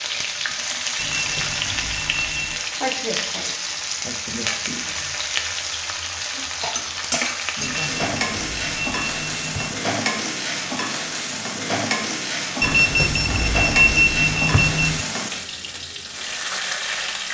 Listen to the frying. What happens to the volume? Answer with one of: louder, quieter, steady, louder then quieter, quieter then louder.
steady.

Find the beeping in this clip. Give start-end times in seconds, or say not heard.
0.9-2.6, 7.6-9.8, 12.6-15.1.